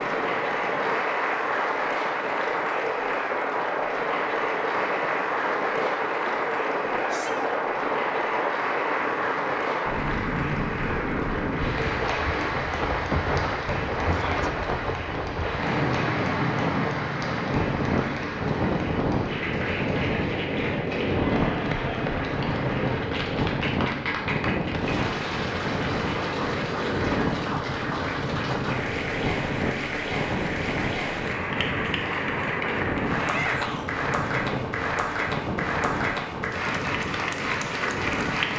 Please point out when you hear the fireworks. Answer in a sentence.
You can't hear the fireworks here.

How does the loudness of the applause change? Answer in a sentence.
The volume of the applause stays about the same.